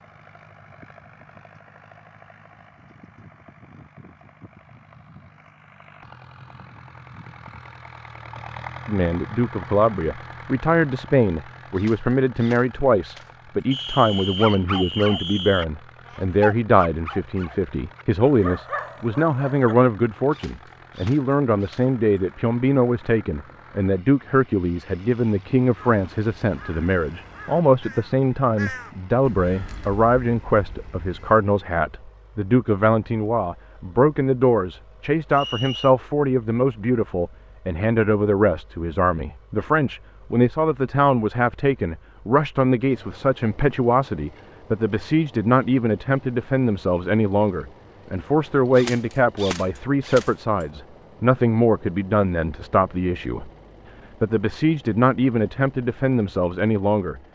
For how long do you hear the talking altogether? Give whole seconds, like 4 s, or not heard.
48 s.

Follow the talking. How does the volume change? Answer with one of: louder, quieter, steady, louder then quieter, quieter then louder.
steady.